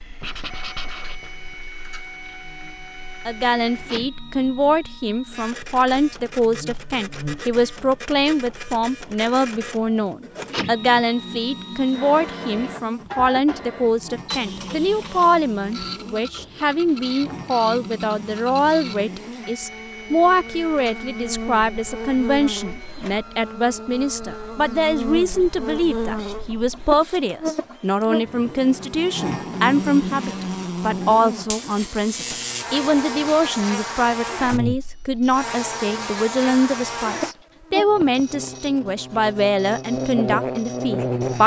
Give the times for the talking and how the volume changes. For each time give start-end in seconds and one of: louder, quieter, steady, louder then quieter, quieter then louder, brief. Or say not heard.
3.2-41.4 steady.